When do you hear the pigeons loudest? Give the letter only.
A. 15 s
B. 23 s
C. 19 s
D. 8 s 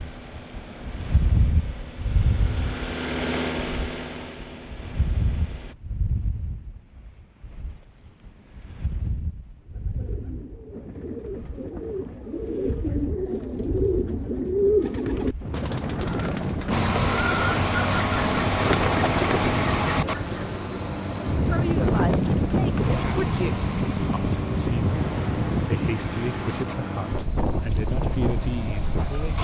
A.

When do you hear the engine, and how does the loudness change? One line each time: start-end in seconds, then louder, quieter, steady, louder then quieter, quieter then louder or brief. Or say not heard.
0.0-5.8 louder then quieter
16.7-29.3 quieter.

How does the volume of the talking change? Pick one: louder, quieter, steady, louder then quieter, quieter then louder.
steady.